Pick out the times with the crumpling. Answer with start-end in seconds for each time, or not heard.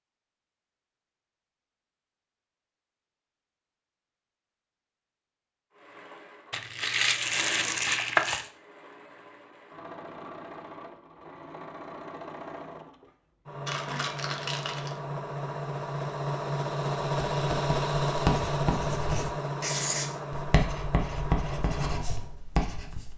6.5-8.4, 13.7-15.0.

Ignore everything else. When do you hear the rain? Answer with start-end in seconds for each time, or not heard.
not heard.